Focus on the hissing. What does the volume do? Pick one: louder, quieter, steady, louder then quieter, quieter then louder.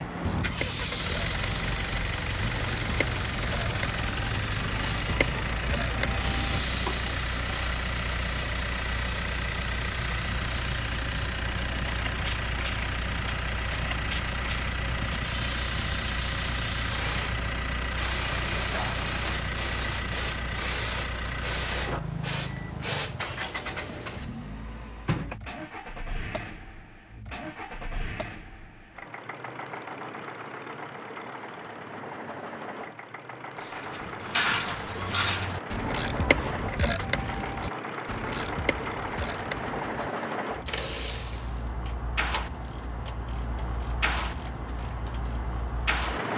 steady.